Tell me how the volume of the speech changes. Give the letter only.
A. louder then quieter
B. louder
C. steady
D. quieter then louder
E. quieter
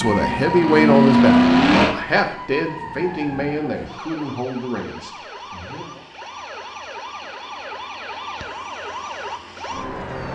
E.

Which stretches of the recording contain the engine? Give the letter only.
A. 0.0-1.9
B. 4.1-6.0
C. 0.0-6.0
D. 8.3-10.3
A.